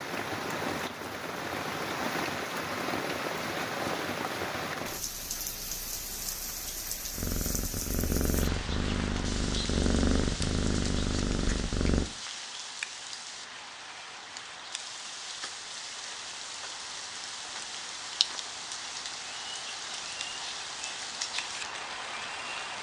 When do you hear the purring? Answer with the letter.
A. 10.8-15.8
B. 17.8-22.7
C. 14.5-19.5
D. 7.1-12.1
D.